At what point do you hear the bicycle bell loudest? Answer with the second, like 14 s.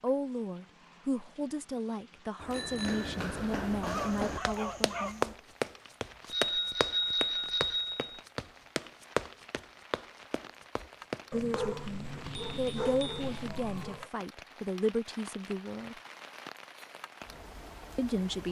7 s.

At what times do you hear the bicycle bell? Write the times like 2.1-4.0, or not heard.
2.5-3.2, 6.3-8.2, 12.4-13.2.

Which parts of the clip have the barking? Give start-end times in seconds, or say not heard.
3.8-5.3, 11.3-14.1.